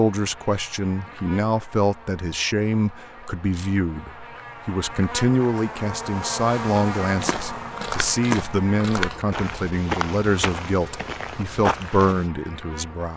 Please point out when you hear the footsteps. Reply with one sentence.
You can hear the footsteps from 6.8 to 12.3 s.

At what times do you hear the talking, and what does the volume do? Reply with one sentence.
The talking can be heard from 0.0 to 13.1 s, at a steady volume.